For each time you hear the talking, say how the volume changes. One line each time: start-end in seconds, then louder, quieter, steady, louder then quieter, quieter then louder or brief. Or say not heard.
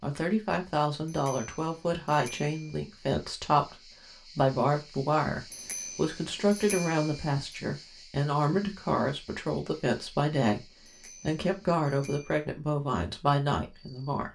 0.0-14.3 steady.